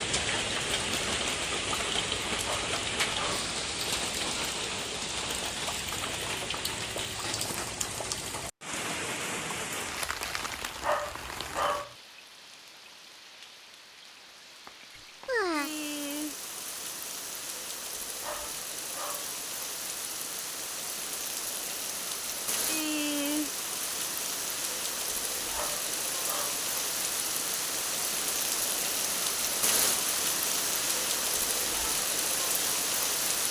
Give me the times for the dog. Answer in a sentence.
You can hear the dog from 2.4 to 3.5 s, from 10.8 to 11.9 s, from 18.2 to 19.4 s and from 25.5 to 26.6 s.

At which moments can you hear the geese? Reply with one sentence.
The geese can't be heard in this clip.